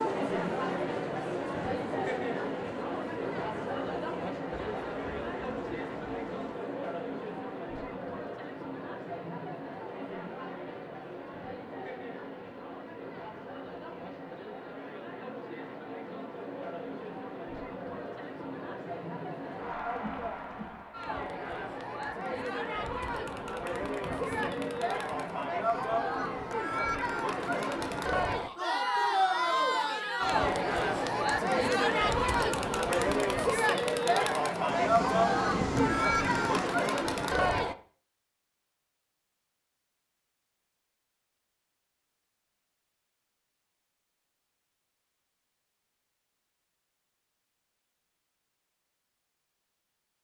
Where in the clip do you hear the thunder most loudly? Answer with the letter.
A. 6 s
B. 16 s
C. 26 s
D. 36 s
D.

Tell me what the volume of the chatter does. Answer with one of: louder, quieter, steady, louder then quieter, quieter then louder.
quieter then louder.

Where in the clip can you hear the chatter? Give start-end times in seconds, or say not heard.
0.0-37.8.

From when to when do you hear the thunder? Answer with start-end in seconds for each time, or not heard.
4.5-6.5, 23.9-26.4, 34.6-36.7.